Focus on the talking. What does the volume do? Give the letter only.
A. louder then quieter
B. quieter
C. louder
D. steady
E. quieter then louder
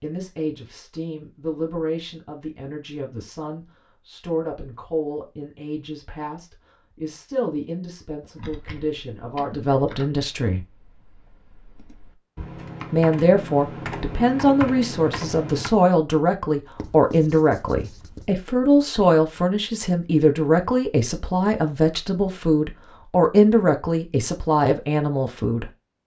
C.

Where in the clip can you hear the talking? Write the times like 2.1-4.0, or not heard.
0.0-10.7, 12.9-25.7.